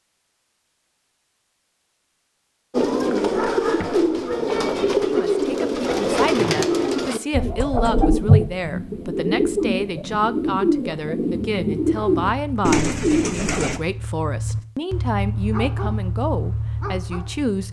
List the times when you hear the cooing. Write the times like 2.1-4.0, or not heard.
2.7-13.8.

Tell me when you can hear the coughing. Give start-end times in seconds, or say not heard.
not heard.